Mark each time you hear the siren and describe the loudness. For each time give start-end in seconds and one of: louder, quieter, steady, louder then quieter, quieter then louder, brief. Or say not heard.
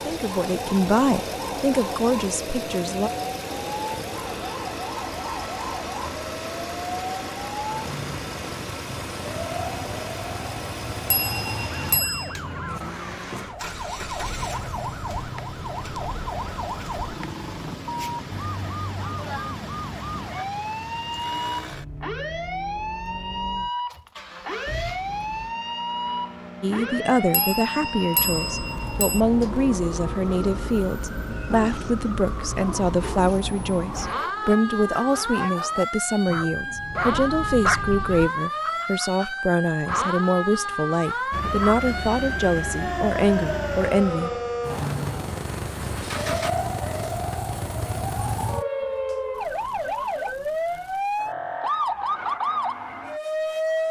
0.0-53.8 louder.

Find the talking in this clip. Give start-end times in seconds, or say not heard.
0.0-3.1, 26.6-44.3.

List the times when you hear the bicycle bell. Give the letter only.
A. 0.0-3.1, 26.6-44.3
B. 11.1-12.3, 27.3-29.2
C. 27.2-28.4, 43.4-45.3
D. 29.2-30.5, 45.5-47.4
B.